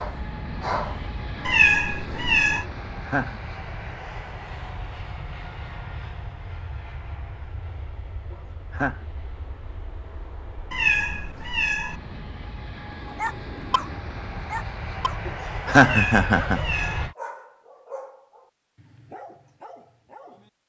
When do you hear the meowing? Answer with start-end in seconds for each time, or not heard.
1.4-2.6, 10.7-12.0, 15.8-17.1.